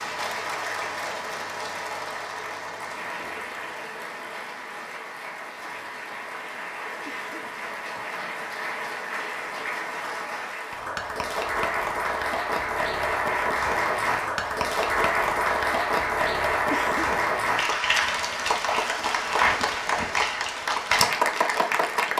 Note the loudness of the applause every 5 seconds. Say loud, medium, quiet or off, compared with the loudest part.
medium, medium, loud, loud, loud.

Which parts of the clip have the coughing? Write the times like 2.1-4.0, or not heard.
7.0-8.1, 16.7-17.6.